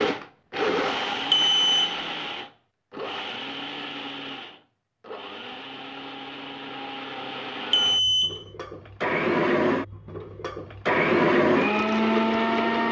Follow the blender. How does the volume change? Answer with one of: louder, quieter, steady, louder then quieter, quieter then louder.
quieter then louder.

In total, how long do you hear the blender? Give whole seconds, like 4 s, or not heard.
13 s.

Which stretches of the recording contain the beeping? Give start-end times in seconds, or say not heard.
1.3-1.9, 7.7-8.4.